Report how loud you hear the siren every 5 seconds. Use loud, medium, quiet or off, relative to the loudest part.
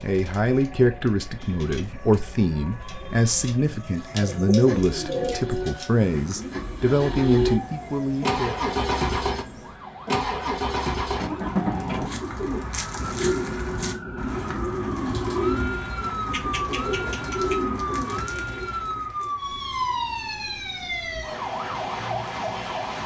quiet, medium, medium, loud, loud.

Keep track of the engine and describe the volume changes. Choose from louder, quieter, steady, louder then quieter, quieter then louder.
louder.